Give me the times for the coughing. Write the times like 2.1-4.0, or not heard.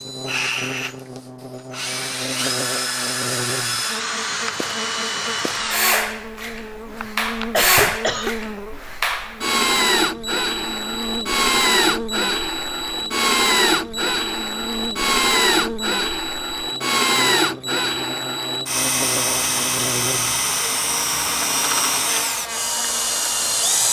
7.0-8.3.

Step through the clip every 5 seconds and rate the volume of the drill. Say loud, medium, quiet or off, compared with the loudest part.
medium, loud, loud, loud, loud.